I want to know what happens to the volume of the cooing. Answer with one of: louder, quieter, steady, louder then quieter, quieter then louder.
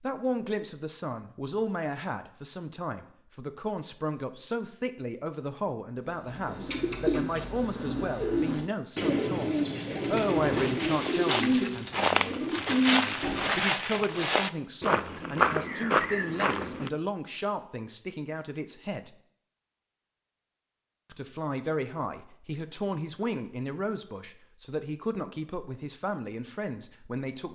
steady.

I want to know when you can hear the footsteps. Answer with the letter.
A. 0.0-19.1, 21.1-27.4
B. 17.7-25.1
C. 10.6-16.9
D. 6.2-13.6
C.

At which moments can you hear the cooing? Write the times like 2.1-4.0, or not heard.
6.2-13.6.